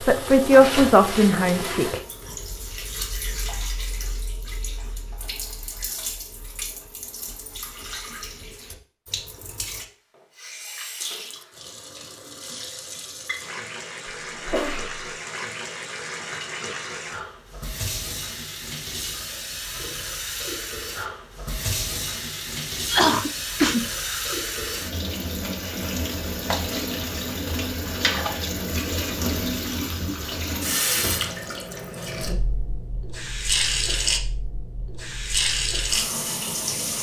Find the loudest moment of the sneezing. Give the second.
23 s.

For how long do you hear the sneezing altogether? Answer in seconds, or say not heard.
2 s.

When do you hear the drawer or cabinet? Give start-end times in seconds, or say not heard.
not heard.